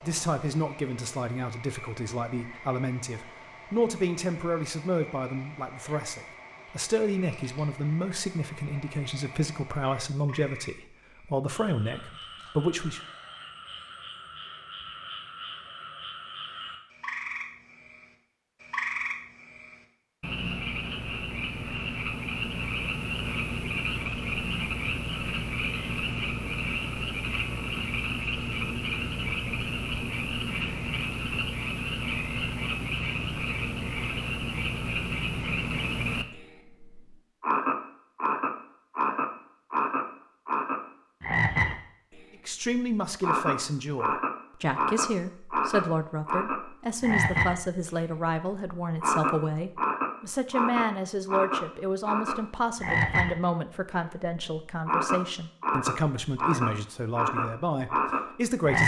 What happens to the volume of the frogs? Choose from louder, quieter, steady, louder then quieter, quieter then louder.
louder.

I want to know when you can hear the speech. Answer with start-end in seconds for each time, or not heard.
0.0-13.0, 42.5-58.8.